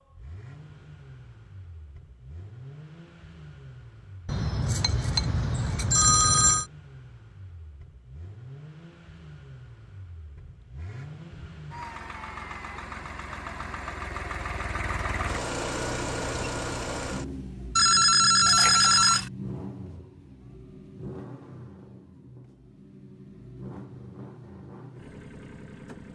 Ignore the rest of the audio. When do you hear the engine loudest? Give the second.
16 s.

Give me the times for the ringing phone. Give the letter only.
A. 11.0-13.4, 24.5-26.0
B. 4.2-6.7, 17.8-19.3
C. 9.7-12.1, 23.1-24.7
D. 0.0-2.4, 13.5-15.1
B.